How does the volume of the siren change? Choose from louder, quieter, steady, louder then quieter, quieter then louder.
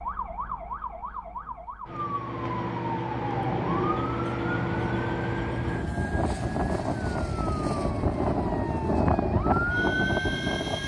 louder.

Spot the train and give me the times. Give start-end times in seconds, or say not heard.
3.4-10.8.